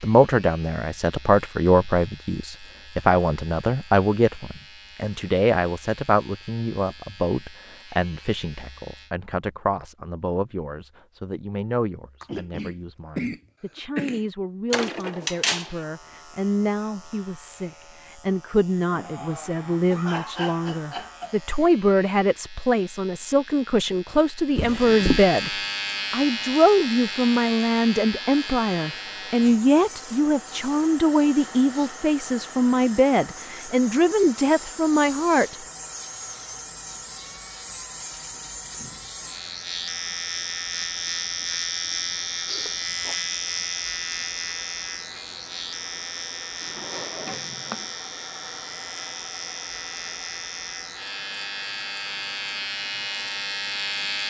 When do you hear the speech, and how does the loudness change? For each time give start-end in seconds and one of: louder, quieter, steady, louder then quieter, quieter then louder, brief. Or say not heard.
0.0-35.5 quieter then louder.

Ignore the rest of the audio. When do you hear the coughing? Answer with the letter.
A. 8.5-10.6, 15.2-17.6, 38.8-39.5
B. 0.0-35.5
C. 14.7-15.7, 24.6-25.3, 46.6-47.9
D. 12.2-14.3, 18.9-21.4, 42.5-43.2
D.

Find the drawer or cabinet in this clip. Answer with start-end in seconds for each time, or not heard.
14.7-15.7, 24.6-25.3, 46.6-47.9.